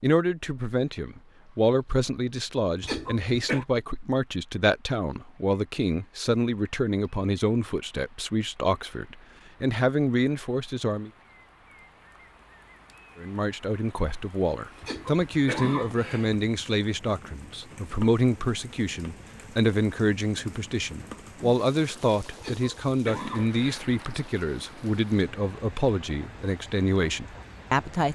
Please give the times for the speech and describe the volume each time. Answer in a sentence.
You can hear the speech from 0.0 to 11.1 s, at a steady volume; and from 13.2 to 28.1 s, at a steady volume.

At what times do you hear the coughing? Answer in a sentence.
You can hear the coughing from 2.8 to 3.6 s, from 14.8 to 16.4 s and from 22.4 to 23.9 s.